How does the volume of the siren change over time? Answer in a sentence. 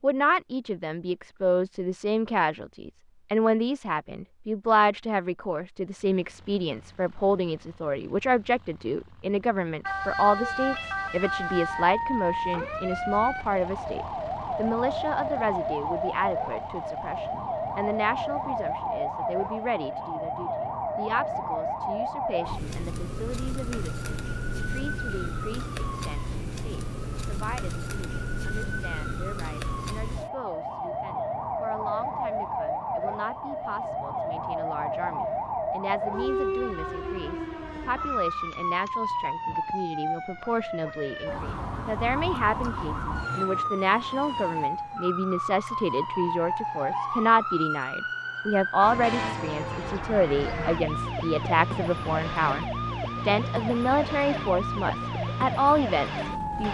The loudness of the siren stays about the same.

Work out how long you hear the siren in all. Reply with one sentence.
The siren can be heard for 47 seconds in total.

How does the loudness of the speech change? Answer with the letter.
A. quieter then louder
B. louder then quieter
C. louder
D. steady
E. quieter
A.